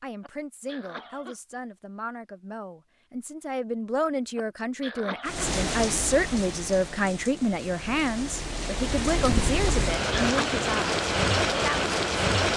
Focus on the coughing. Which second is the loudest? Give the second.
10 s.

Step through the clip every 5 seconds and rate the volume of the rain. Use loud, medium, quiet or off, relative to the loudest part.
off, medium, loud.